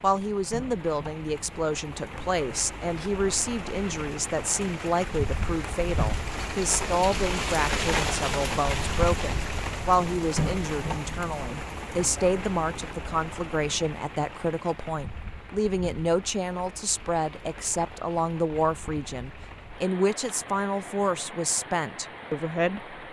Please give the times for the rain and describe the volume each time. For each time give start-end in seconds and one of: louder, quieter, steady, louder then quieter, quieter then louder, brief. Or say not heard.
0.0-23.0 louder then quieter.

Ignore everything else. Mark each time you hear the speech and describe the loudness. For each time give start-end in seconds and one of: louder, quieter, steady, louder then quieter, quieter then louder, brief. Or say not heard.
0.0-22.9 steady.